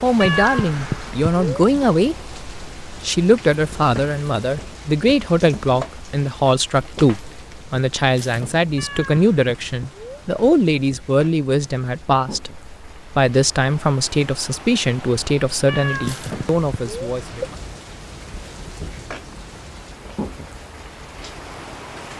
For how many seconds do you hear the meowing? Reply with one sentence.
You can hear the meowing for 5 seconds altogether.